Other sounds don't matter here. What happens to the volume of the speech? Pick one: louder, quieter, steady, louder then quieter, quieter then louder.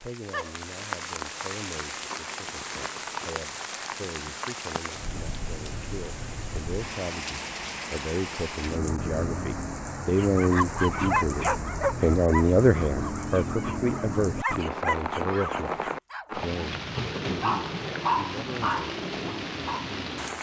louder then quieter.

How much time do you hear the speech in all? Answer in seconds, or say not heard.
20 s.